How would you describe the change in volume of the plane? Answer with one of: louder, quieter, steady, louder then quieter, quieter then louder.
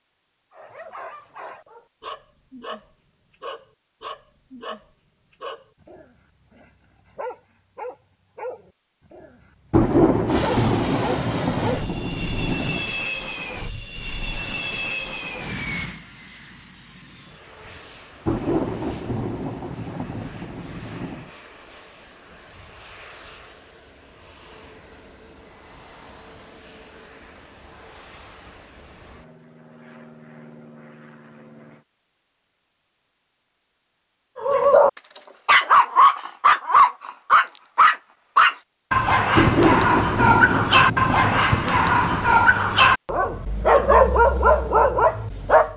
quieter.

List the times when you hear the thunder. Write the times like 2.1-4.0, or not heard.
9.7-12.9, 18.2-21.3, 39.4-42.2.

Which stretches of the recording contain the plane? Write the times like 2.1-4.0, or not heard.
10.2-31.9.